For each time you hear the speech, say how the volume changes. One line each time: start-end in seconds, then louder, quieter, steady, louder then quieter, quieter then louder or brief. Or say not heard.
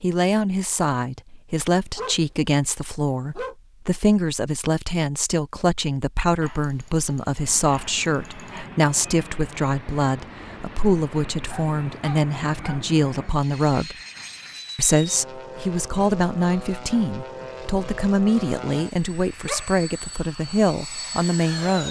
0.0-13.9 steady
14.8-21.8 steady.